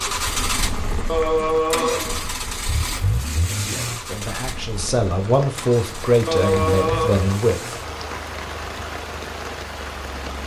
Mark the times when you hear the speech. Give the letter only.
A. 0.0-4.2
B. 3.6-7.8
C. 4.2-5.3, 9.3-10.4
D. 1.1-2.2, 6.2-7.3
B.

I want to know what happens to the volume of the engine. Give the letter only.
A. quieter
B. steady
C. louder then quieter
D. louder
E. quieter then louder
A.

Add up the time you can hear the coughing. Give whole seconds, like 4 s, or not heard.
2 s.